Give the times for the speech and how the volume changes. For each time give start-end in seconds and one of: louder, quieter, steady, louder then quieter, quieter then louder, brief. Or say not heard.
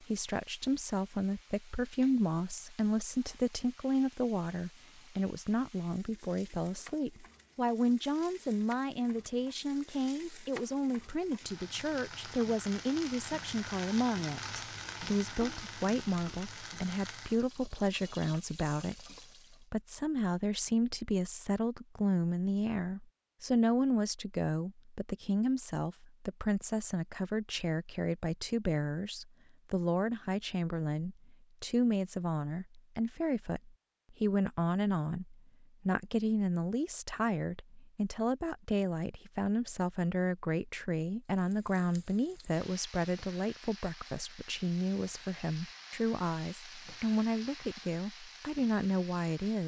0.0-49.6 steady.